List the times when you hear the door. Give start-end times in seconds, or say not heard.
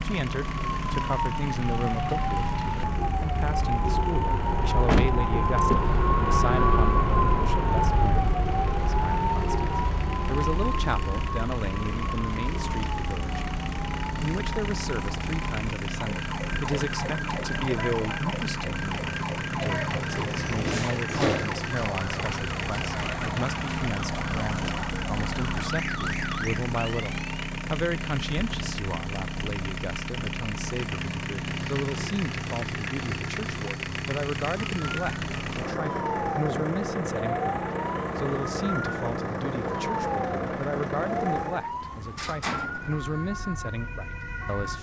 4.8-6.0, 20.1-21.6, 41.6-43.0.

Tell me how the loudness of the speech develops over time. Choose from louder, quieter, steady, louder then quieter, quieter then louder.
steady.